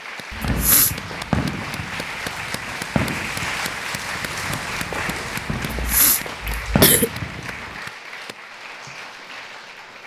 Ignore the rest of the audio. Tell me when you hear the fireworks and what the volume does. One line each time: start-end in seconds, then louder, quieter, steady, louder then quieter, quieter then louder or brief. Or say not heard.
0.4-7.8 quieter then louder.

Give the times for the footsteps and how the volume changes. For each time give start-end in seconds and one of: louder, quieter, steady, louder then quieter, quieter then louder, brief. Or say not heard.
not heard.